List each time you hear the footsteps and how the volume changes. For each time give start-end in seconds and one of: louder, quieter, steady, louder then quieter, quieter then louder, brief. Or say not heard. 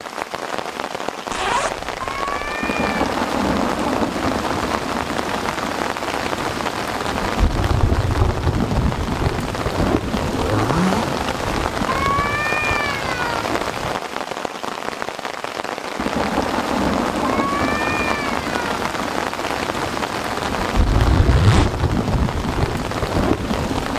not heard.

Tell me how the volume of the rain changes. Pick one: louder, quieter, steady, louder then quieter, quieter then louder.
steady.